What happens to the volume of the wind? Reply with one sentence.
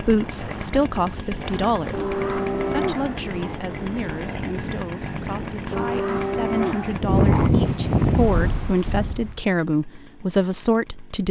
The volume of the wind goes up.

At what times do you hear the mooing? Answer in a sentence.
The mooing can be heard from 1.9 to 3.6 s and from 5.7 to 7.5 s.